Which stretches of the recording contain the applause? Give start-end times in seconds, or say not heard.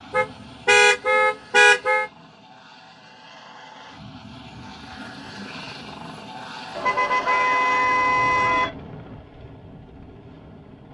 not heard.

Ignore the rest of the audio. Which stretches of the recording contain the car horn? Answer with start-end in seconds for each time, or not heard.
0.1-2.0, 6.8-8.7.